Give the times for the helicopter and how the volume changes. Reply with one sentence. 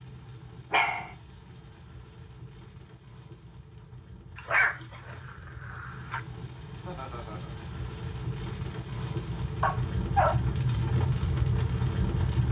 The helicopter can't be heard in this clip.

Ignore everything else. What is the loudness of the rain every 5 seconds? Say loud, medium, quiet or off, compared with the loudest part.
quiet, medium, loud.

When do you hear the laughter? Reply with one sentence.
The laughter can be heard from 6.8 to 7.5 s.